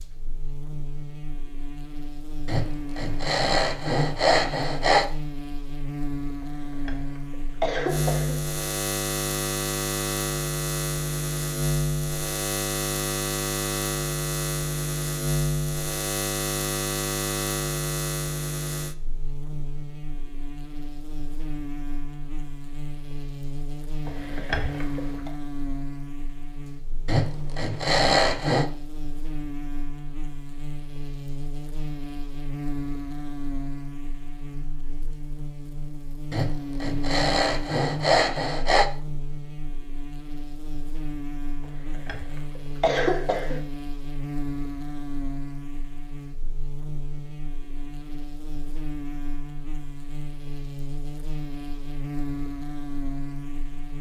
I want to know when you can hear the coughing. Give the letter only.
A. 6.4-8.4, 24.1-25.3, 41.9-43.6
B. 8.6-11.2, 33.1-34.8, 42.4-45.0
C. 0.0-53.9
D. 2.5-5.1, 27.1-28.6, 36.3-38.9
A.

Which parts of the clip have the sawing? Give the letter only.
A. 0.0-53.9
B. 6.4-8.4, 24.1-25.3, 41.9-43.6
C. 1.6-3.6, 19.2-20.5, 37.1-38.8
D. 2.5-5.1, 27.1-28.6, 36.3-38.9
D.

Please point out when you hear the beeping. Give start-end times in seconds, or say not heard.
not heard.